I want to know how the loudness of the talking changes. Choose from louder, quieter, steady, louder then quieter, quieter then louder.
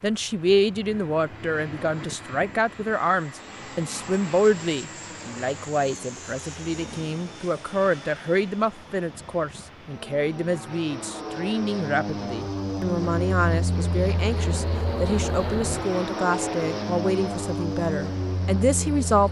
steady.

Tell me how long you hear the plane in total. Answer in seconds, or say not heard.
19 s.